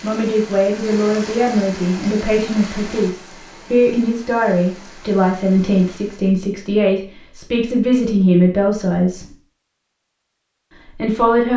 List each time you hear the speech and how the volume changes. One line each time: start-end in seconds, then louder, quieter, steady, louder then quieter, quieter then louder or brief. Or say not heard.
0.0-9.2 steady
10.9-11.5 brief.